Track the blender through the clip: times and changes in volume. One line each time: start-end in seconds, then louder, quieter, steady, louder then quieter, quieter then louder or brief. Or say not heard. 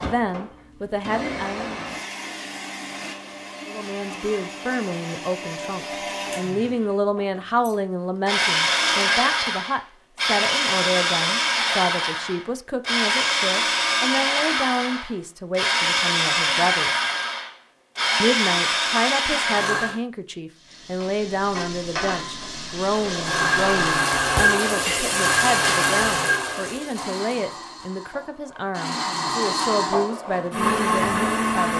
0.0-20.0 louder
22.9-31.7 quieter then louder.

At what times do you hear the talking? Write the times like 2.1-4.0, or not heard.
0.0-1.8, 3.6-17.0, 18.2-31.7.